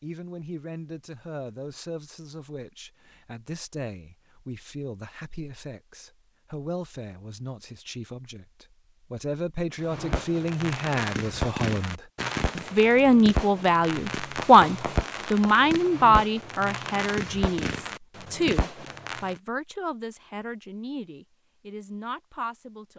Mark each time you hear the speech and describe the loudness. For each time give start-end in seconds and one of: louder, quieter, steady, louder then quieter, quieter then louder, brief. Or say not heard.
0.0-22.9 louder then quieter.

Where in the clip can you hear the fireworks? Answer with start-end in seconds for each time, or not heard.
9.8-19.4.